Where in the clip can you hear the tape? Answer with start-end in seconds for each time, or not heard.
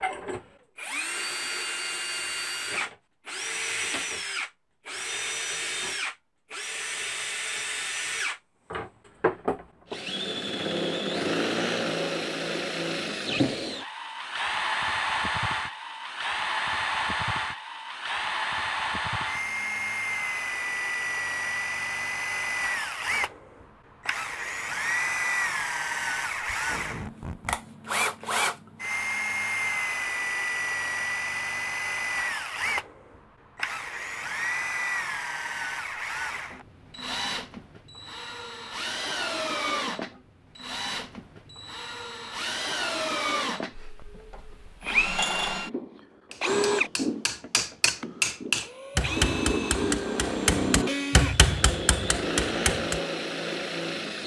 26.5-27.6.